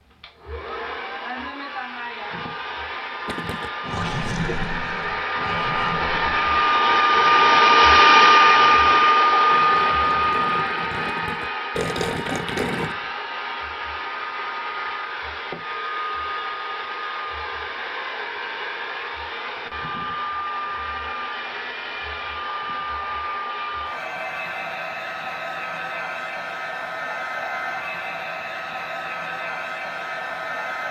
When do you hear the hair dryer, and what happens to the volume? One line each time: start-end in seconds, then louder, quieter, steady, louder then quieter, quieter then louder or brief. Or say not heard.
0.0-30.8 louder then quieter.